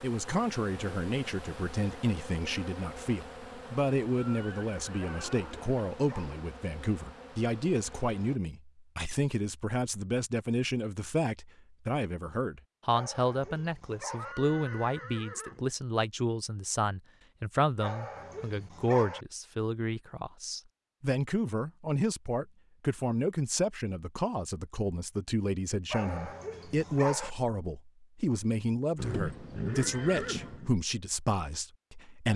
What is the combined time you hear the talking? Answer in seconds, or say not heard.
32 s.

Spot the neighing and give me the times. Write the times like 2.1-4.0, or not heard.
4.2-5.8, 14.2-15.7, 28.9-30.7.